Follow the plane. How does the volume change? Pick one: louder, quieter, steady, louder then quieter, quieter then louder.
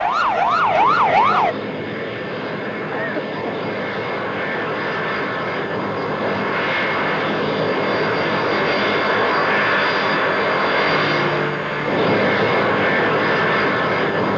louder.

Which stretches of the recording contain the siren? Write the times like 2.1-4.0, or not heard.
0.0-1.6.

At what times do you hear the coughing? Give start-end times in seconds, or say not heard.
2.9-3.6.